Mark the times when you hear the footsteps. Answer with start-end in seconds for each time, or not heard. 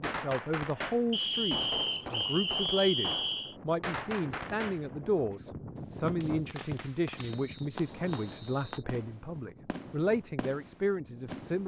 not heard.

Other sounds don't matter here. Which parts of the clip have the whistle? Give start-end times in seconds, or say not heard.
1.1-3.5, 6.0-8.8.